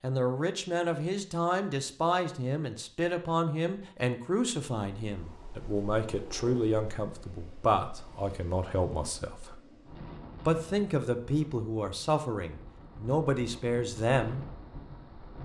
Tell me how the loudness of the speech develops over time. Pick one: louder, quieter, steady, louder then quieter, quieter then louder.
steady.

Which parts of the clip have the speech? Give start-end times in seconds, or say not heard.
0.0-9.6, 10.4-14.4.